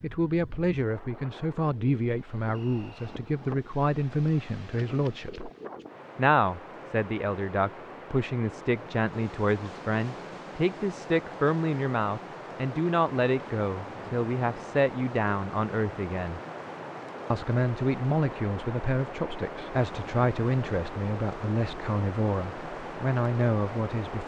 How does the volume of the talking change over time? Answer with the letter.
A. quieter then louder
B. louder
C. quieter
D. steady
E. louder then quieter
D.